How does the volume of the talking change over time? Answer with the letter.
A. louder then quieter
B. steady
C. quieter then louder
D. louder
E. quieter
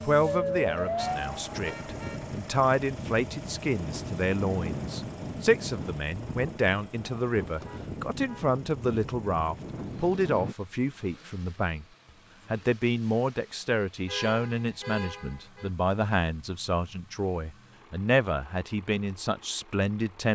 B.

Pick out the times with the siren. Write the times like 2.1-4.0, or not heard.
0.0-1.7.